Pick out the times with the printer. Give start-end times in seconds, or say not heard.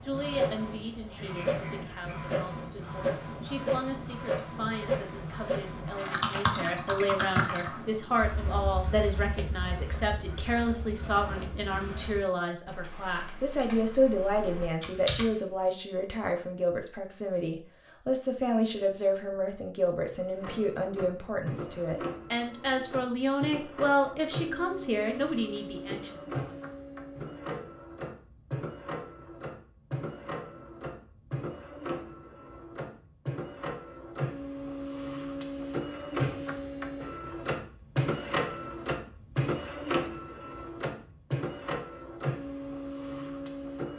0.0-12.4, 20.1-43.9.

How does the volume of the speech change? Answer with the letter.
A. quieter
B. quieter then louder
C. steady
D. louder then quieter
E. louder
E.